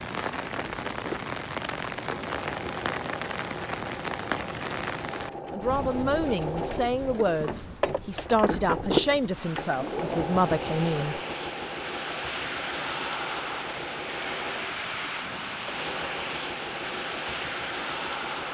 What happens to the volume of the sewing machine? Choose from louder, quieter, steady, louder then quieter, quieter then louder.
louder then quieter.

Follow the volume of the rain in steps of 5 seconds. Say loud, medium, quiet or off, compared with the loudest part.
loud, medium, loud, loud.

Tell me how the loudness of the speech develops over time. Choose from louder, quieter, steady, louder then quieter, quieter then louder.
steady.